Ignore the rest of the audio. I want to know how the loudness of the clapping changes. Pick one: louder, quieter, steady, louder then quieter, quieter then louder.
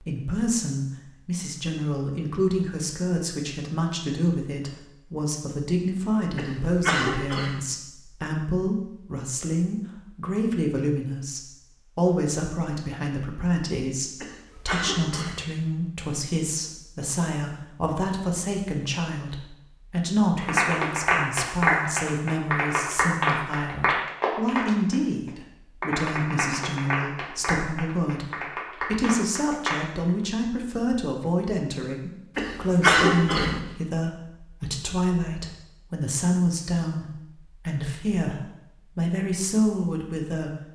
quieter.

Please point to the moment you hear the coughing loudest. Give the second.
33 s.